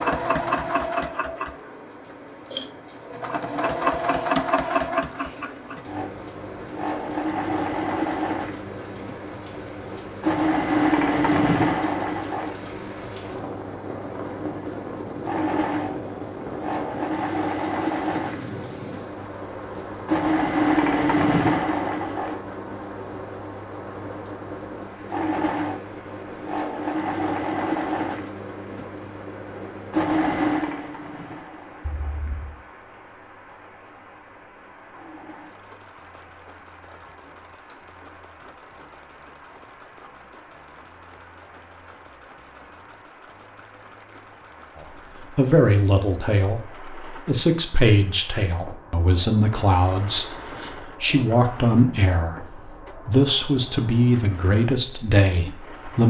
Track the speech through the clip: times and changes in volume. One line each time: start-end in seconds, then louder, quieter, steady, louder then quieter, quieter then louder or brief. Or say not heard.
45.4-56.0 steady.